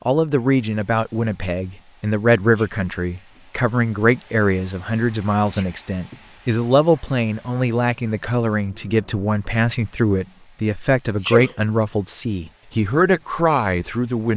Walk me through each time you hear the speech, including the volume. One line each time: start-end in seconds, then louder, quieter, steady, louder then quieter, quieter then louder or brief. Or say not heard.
0.1-14.3 steady.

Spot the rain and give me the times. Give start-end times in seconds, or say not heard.
not heard.